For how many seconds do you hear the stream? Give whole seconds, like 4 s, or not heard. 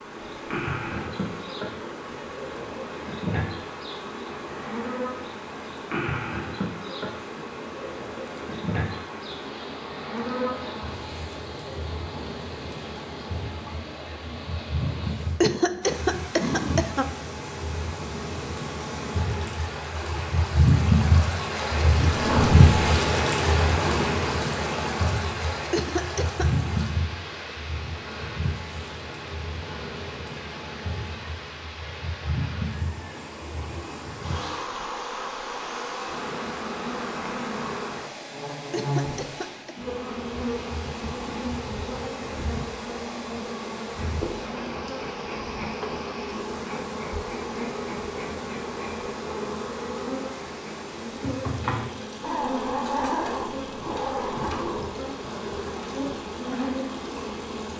58 s.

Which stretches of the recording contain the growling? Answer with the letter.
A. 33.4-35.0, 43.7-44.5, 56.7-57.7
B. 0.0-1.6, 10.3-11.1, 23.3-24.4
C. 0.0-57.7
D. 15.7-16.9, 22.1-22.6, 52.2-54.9
D.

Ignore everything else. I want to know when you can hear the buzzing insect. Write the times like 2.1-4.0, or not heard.
0.0-57.7.